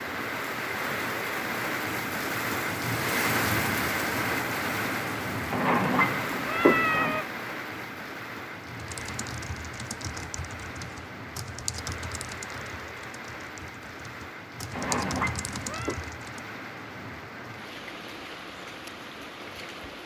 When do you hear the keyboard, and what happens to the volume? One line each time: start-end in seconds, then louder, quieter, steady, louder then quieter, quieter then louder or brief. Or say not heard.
8.7-16.4 quieter then louder.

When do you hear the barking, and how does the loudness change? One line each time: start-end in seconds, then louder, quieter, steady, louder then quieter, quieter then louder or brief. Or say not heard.
not heard.